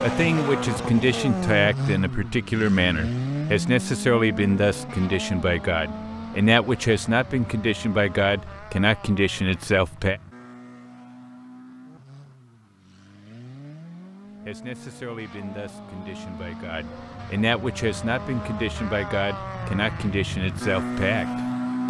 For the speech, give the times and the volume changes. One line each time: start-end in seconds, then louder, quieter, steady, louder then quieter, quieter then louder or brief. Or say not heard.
0.0-10.2 steady
14.4-21.8 louder.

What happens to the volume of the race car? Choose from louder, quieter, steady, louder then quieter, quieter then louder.
quieter then louder.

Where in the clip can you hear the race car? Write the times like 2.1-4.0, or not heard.
0.0-21.8.